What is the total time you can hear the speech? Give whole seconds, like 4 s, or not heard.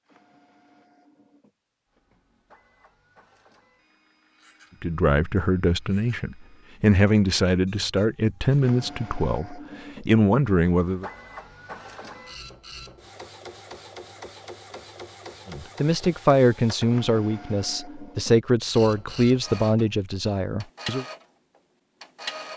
12 s.